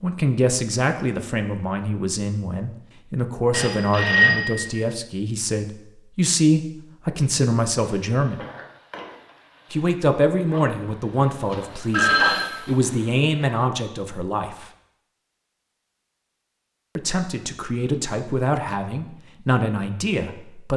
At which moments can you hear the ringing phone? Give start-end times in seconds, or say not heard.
3.5-4.8, 11.5-12.4.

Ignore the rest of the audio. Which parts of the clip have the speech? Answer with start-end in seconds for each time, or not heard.
0.0-8.4, 9.7-14.7, 16.9-20.7.